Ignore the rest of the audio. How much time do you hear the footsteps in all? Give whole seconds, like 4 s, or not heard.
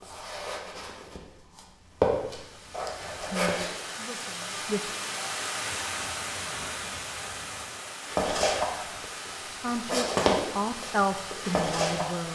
8 s.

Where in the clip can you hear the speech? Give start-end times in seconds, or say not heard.
3.2-4.8, 9.6-12.2.